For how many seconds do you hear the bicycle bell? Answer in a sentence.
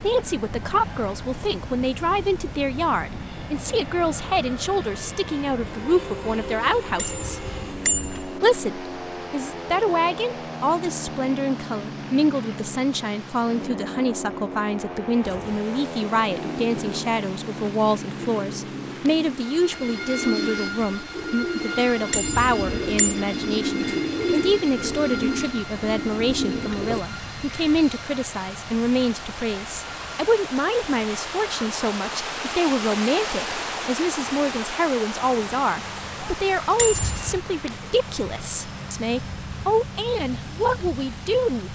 You can hear the bicycle bell for 3 seconds altogether.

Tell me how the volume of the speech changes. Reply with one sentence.
The loudness of the speech stays about the same.